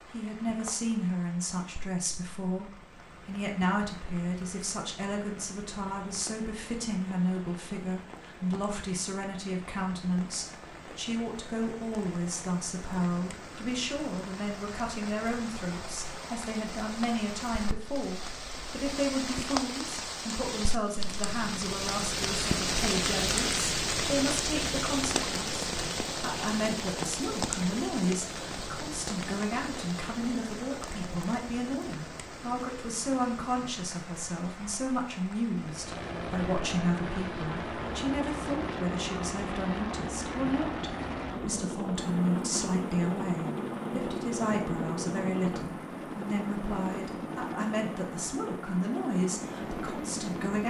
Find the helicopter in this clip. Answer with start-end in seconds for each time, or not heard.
35.5-50.6.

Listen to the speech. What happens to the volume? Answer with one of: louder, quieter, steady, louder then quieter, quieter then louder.
steady.